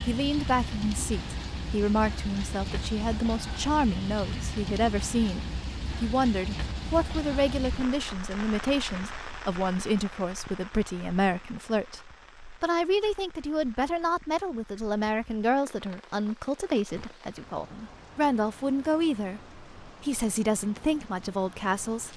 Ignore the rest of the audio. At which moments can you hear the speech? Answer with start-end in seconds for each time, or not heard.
0.0-12.0, 12.6-22.1.